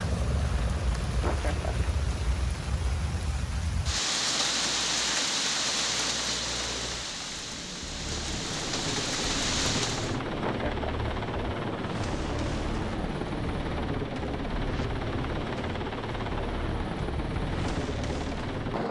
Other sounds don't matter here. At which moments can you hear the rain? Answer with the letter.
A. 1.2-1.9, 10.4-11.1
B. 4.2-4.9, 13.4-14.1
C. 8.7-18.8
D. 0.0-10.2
D.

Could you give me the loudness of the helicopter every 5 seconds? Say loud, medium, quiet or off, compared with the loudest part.
medium, medium, loud, loud.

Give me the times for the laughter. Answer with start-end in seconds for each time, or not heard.
1.2-1.9, 10.4-11.1.